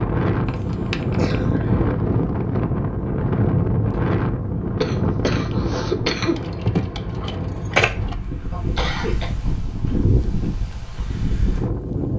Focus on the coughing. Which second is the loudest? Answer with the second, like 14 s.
6 s.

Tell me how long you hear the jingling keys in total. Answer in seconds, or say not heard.
3 s.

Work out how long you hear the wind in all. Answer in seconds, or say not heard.
12 s.